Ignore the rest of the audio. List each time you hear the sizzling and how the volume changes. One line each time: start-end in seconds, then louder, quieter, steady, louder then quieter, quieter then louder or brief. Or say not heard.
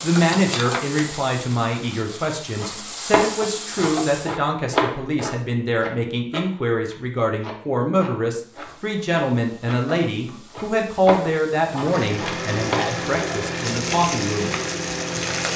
0.0-4.4 quieter then louder
8.4-15.5 louder.